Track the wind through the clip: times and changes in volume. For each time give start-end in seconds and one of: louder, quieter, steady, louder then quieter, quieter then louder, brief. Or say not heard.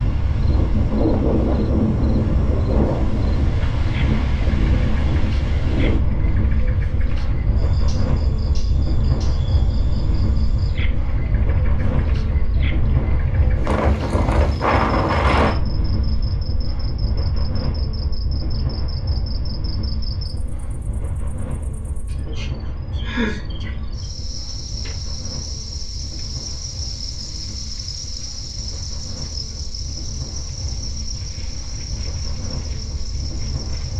0.0-33.9 quieter.